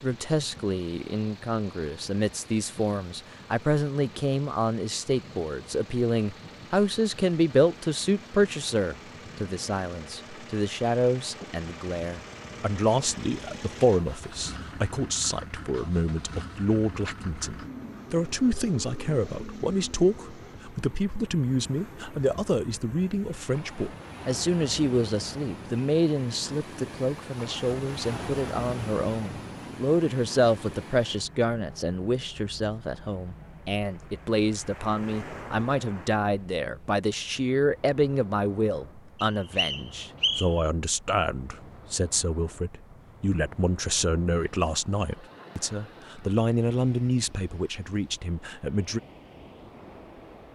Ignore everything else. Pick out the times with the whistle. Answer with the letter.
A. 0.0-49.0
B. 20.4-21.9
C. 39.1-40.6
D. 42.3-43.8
C.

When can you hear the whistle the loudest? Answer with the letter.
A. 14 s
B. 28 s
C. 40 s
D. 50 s
C.